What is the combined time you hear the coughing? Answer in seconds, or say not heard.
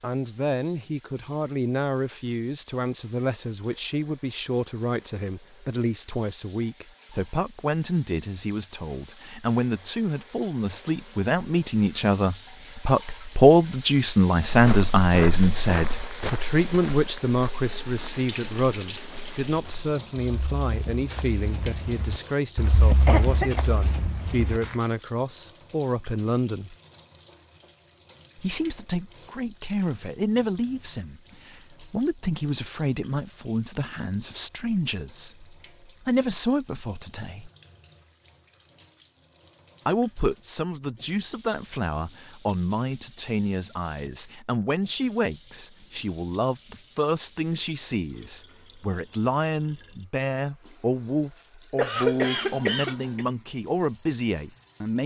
2 s.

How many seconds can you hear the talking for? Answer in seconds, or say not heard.
51 s.